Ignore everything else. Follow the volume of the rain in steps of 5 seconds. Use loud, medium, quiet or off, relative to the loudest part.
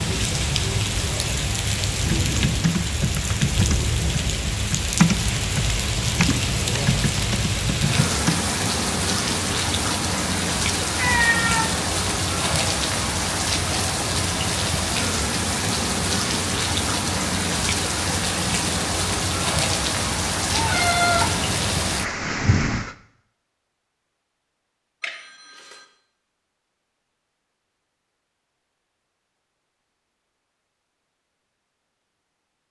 loud, loud, loud, loud, loud, off, off.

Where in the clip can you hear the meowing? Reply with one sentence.
The meowing can be heard from 10.9 to 11.7 s and from 20.5 to 22.0 s.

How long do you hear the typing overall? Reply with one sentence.
You can hear the typing for 6 seconds altogether.